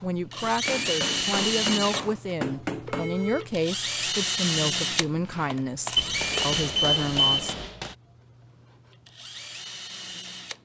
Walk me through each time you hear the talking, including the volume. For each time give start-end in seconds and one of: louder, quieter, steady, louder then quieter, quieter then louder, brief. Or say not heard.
0.0-7.5 steady.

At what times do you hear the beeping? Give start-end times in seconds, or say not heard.
2.9-3.5, 6.0-7.7.